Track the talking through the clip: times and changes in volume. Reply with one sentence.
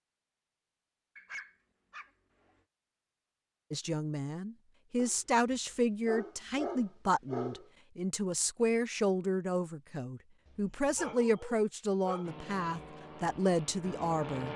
You can hear the talking from 3.7 to 14.5 s, at a steady volume.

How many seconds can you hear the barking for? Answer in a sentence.
You can hear the barking for 6 seconds altogether.